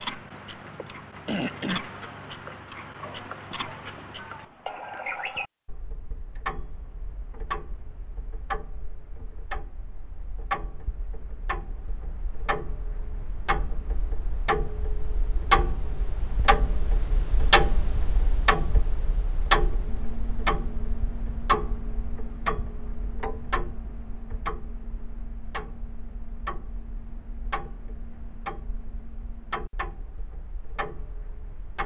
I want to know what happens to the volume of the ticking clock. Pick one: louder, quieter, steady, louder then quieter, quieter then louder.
louder then quieter.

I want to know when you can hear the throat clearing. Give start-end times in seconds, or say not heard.
0.7-1.8.